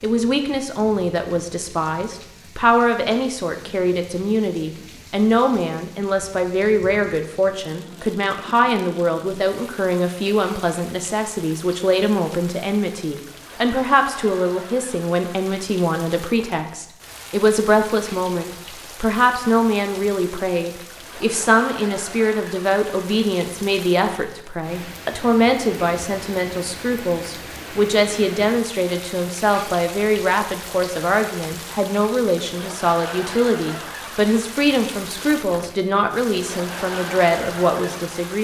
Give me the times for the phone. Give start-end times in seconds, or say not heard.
not heard.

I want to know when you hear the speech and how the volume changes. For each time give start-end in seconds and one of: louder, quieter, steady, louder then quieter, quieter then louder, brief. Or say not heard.
0.0-38.3 steady.